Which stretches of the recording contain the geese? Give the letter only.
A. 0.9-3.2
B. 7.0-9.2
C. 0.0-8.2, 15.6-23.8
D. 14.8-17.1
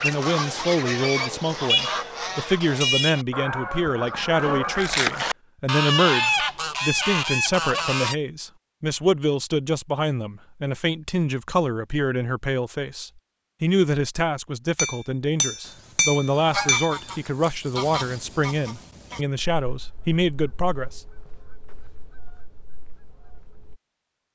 C.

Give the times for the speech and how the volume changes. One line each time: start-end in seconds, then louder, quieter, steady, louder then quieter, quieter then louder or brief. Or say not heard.
0.0-21.0 steady.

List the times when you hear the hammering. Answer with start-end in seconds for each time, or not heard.
14.8-17.1.